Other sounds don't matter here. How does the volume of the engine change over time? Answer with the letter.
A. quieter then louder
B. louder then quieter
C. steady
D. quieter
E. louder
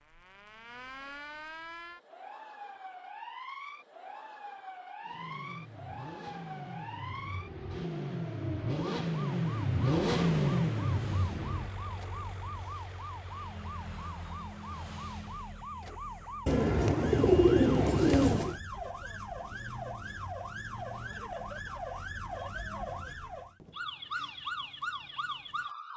B.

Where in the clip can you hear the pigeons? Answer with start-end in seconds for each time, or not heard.
16.4-18.6.